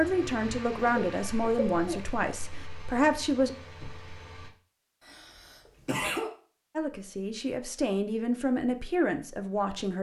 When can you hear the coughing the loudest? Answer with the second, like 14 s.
6 s.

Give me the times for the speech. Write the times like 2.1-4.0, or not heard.
0.0-3.5, 6.8-9.9.